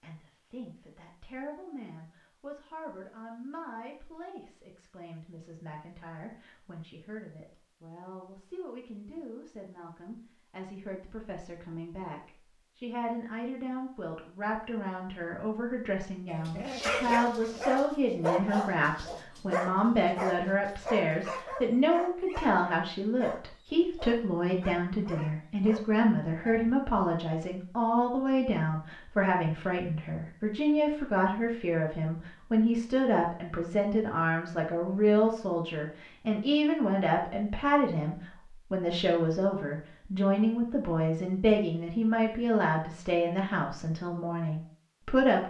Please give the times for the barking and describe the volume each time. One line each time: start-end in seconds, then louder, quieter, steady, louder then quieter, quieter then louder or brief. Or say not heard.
16.3-26.8 quieter.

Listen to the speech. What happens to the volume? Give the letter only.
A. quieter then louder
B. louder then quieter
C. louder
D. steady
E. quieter
C.